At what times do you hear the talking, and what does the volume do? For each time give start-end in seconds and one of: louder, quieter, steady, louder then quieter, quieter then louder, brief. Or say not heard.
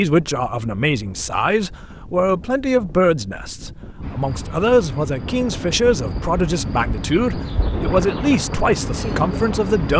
0.0-9.9 steady.